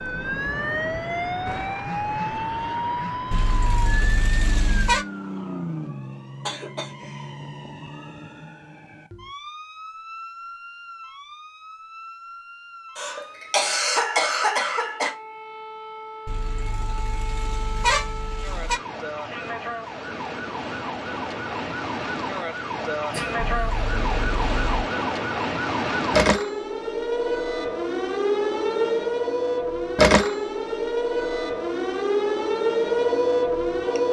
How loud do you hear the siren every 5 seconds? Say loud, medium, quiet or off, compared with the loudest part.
medium, quiet, quiet, quiet, medium, loud, loud.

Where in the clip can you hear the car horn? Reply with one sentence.
The car horn can be heard from 3.3 to 5.0 s, from 16.2 to 18.8 s and from 23.4 to 24.9 s.